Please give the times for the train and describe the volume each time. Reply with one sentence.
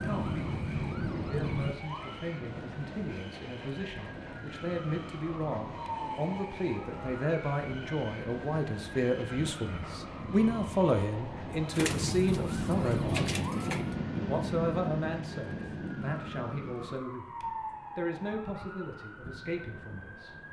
You can hear the train from 0.0 to 16.9 s, getting louder.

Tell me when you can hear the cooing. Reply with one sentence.
You can hear the cooing from 11.7 to 13.9 s.